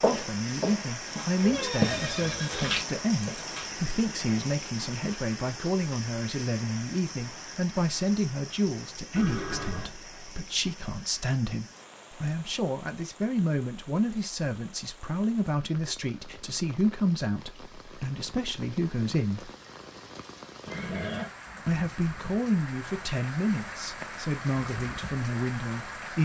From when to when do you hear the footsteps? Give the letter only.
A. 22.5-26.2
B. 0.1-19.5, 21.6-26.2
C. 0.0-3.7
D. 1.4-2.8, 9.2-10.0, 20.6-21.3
C.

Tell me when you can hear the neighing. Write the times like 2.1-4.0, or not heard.
1.4-2.8, 9.2-10.0, 20.6-21.3.